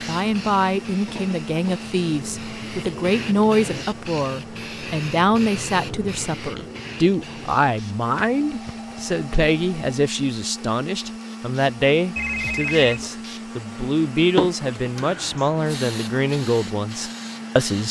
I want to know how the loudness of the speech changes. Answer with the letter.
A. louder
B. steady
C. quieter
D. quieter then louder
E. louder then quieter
B.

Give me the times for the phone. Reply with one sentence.
You can hear the phone from 1.1 to 1.9 s, from 8.2 to 9.9 s and from 12.2 to 13.1 s.